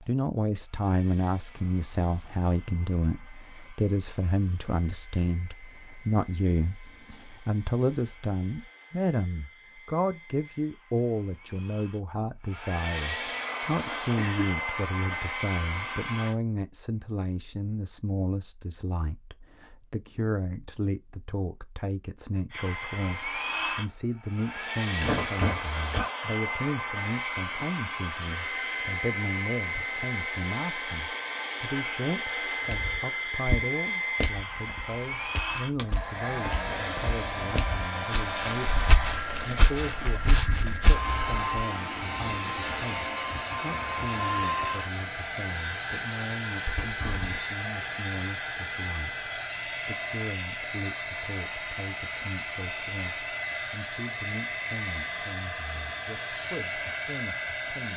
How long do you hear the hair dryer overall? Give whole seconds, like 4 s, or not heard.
52 s.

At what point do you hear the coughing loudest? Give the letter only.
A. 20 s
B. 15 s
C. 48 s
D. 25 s
D.